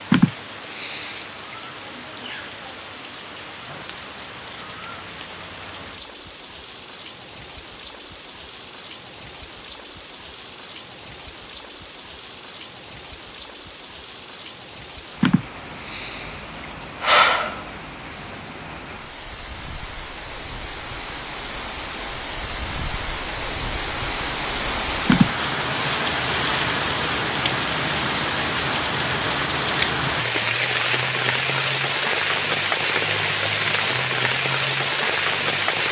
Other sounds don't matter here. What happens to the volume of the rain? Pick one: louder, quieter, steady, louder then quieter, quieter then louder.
louder.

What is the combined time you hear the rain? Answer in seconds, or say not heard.
36 s.